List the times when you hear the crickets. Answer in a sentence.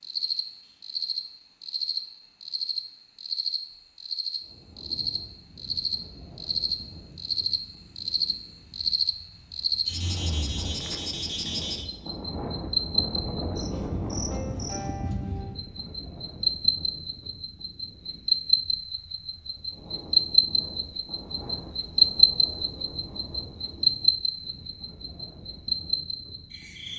The crickets can be heard from 0.0 to 26.9 s.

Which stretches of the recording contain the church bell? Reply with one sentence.
You can't hear the church bell here.